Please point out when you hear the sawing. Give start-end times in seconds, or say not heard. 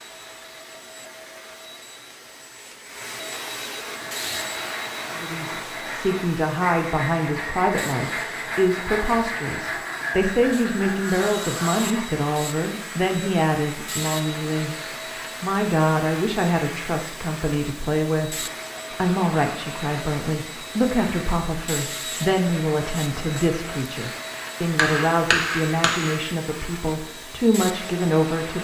3.9-12.0.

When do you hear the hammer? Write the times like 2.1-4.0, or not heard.
24.8-26.2.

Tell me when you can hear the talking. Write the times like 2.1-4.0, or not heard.
5.1-14.8, 15.4-28.5.